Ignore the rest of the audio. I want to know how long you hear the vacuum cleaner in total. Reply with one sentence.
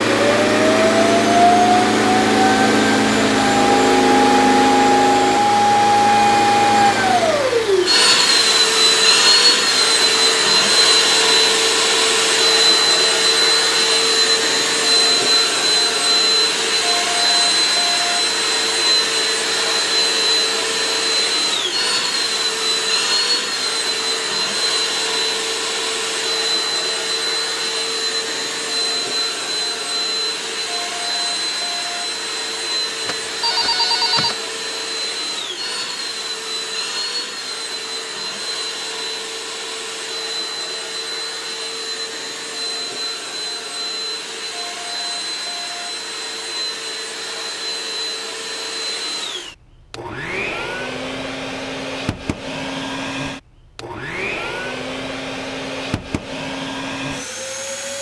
The vacuum cleaner can be heard for 58 seconds in total.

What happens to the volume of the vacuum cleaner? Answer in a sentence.
The loudness of the vacuum cleaner goes down.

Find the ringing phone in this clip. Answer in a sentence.
The ringing phone can be heard from 33.0 to 34.4 s.